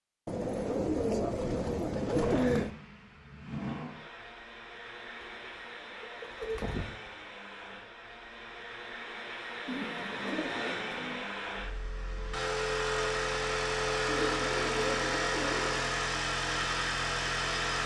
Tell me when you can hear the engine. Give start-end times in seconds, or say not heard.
1.9-17.8.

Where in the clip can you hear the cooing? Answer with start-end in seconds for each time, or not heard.
0.2-2.7, 5.2-7.2, 9.7-11.2, 14.1-15.9.